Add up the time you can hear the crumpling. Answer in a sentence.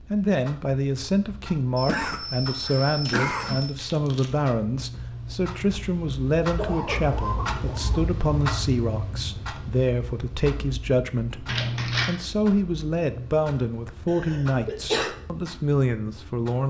You can hear the crumpling for 2 seconds altogether.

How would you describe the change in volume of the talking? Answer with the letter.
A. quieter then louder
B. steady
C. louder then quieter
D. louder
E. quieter
B.